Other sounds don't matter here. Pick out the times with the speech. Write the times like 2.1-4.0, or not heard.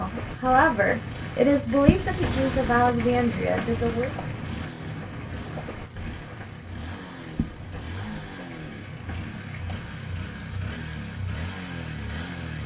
0.0-4.1.